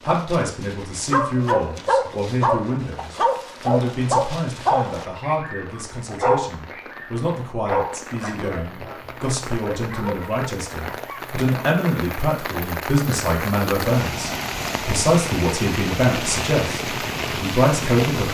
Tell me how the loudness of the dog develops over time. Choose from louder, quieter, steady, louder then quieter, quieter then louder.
quieter.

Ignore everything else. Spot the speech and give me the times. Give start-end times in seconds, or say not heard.
0.1-18.2.